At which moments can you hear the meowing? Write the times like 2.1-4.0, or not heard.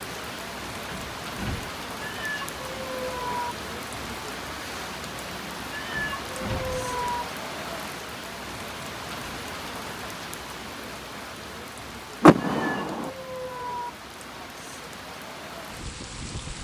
2.0-3.5, 5.7-7.2, 12.6-13.9.